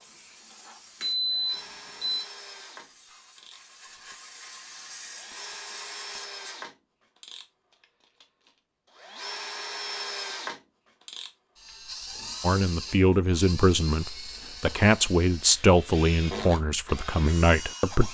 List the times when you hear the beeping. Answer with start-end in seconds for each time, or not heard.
1.0-2.2.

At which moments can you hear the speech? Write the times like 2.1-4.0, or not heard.
12.4-18.0.